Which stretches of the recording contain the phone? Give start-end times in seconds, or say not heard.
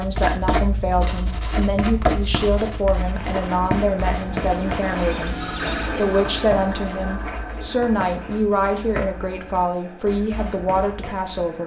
5.2-5.9.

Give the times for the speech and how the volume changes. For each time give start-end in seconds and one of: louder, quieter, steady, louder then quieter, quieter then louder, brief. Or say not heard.
0.0-11.6 steady.